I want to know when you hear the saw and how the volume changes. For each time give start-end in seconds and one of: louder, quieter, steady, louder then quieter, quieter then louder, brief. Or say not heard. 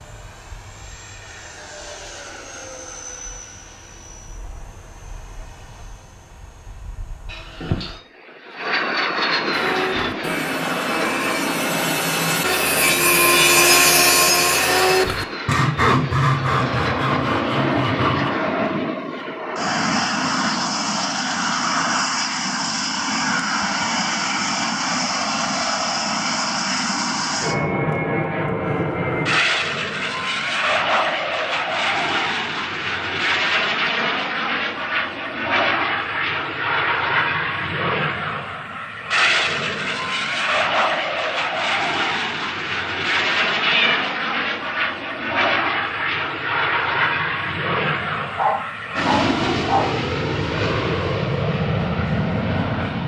9.5-18.3 louder then quieter.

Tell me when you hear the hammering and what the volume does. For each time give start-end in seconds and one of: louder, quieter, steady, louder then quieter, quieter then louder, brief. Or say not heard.
not heard.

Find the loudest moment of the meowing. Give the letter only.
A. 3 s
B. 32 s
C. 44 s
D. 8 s
C.